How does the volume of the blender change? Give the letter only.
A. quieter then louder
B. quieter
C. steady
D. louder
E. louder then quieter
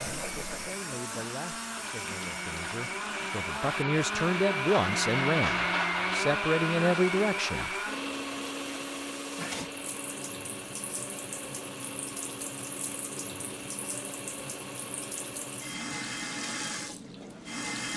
E.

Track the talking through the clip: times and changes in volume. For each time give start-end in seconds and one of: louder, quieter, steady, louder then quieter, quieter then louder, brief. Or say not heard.
0.0-7.7 louder.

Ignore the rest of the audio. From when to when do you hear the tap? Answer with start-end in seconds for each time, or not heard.
0.0-17.9.